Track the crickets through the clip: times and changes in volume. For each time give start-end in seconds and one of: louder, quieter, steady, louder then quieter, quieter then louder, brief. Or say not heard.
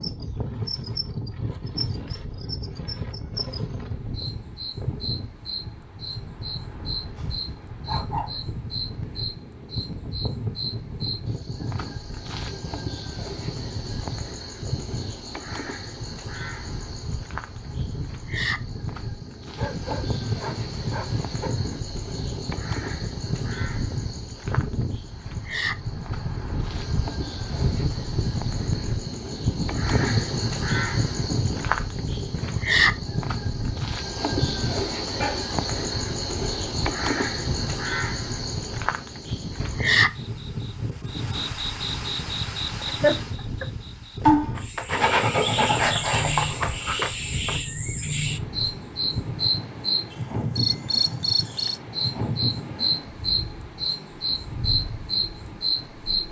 0.0-56.2 louder.